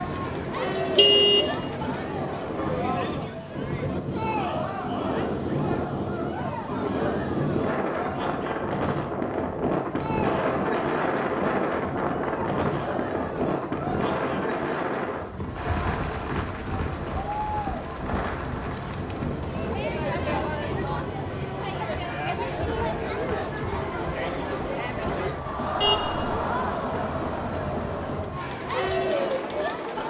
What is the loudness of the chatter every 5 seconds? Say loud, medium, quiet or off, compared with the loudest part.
loud, medium, medium, medium, loud, loud.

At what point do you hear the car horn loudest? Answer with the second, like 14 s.
1 s.